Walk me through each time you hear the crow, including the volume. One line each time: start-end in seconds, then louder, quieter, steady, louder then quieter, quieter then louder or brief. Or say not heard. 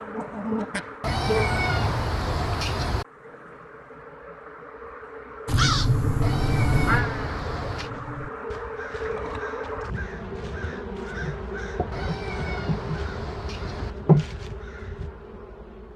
5.5-15.1 quieter.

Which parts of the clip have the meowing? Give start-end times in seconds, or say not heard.
1.0-3.0, 6.2-7.9, 11.9-13.9.